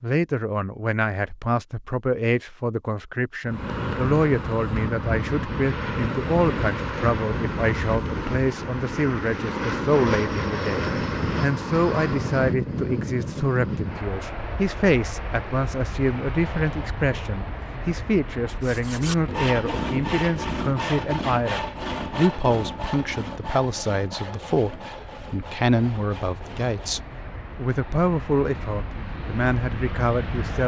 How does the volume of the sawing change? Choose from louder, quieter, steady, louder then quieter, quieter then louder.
quieter.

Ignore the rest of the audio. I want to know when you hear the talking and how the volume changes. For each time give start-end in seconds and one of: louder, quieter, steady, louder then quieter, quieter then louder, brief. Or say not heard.
0.0-30.6 steady.